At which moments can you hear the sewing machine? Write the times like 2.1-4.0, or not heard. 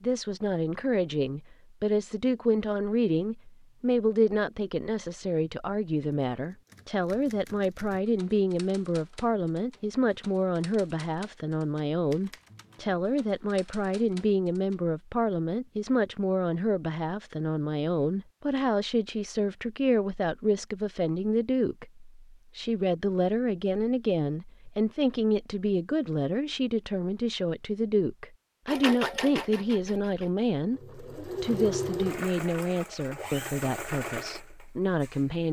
28.6-35.2.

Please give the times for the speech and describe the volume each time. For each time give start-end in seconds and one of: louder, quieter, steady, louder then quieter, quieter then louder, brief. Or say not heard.
0.0-35.4 steady.